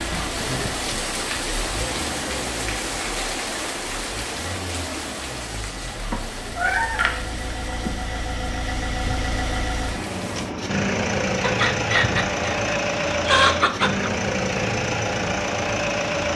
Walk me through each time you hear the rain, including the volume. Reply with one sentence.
You can hear the rain from 0.0 to 10.6 s, getting quieter.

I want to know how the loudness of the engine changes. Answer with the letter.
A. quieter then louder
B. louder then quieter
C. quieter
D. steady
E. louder
E.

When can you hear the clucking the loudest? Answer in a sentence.
The loudest moment of the clucking is at 13 seconds.